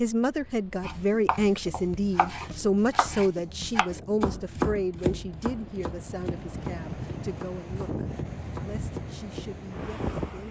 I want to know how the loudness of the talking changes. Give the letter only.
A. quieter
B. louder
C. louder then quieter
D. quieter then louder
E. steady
A.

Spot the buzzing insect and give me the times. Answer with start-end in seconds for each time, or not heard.
not heard.